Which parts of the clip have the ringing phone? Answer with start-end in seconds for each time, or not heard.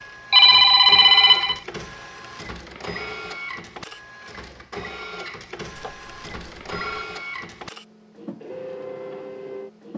0.3-1.6, 5.8-7.0.